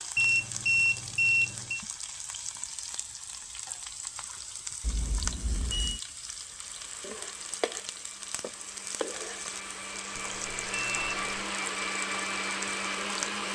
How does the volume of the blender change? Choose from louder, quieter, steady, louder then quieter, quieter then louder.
louder.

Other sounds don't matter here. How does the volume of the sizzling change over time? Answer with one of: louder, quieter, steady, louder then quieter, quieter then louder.
steady.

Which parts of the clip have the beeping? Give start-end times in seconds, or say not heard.
0.1-1.9, 4.8-6.0, 10.2-11.4.